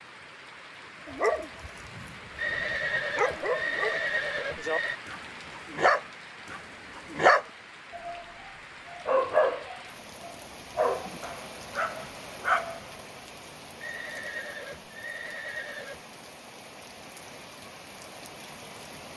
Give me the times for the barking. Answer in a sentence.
The barking can be heard from 1.1 to 1.7 s, from 3.1 to 8.2 s and from 8.9 to 12.8 s.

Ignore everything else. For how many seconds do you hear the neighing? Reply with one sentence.
The neighing can be heard for 5 seconds in total.